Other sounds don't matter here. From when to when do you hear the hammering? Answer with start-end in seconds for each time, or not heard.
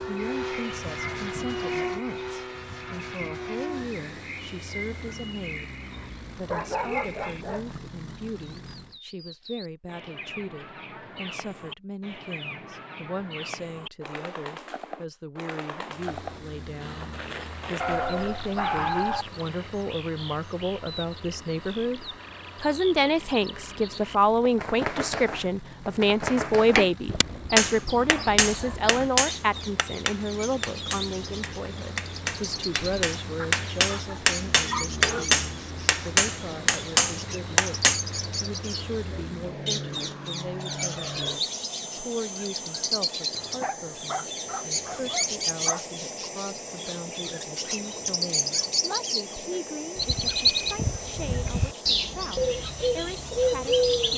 26.8-38.0.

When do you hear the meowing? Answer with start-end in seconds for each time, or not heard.
not heard.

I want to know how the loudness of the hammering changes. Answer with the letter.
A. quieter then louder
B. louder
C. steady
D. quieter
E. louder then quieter
A.